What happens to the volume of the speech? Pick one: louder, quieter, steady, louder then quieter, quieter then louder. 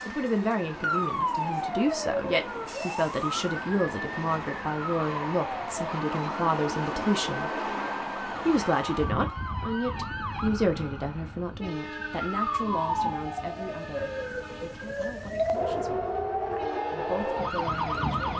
quieter.